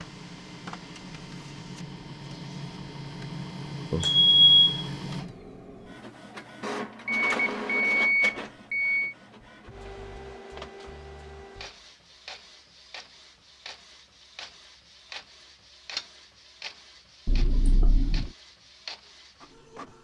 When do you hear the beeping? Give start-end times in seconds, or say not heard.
3.9-4.8, 7.0-9.2, 17.2-18.3.